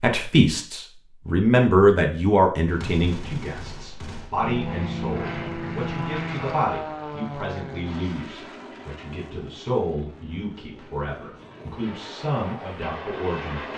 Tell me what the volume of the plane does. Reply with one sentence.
The volume of the plane goes down, then up.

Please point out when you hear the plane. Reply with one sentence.
The plane can be heard from 4.4 to 13.7 s.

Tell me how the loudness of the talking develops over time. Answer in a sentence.
The volume of the talking goes down.